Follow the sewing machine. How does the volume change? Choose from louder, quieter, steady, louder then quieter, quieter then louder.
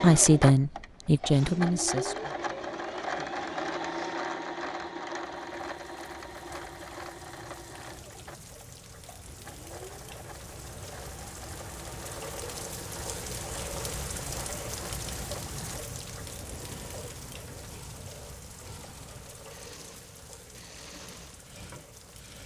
quieter.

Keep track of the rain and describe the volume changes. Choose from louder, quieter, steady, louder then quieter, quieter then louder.
louder then quieter.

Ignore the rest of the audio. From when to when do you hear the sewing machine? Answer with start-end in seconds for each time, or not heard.
0.0-22.4.